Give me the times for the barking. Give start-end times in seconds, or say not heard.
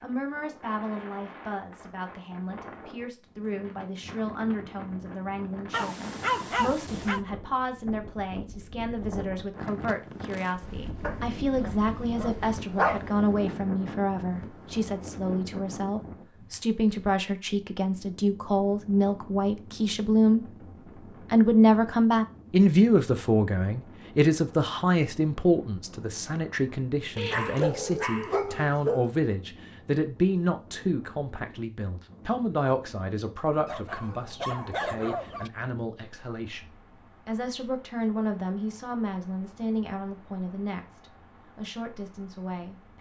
5.7-7.2, 11.0-13.0, 27.1-29.1, 33.6-35.5.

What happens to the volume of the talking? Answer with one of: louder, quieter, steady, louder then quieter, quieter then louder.
louder then quieter.